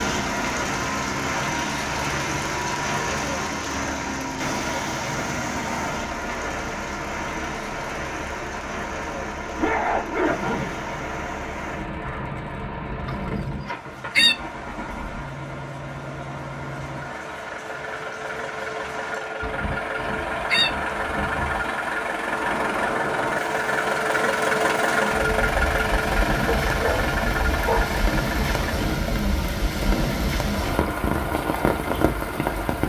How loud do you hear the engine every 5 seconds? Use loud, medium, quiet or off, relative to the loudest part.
medium, medium, medium, medium, loud, loud, medium.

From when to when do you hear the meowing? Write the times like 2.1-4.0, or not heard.
not heard.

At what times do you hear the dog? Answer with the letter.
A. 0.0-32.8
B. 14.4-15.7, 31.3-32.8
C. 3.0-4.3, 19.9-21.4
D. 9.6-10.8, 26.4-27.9
D.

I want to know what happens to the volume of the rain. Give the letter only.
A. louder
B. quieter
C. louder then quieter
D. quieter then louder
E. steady
D.